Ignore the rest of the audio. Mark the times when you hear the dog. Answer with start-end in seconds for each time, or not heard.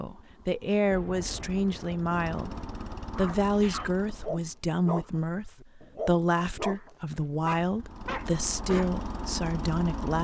3.1-8.9.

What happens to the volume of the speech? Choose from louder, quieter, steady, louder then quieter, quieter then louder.
steady.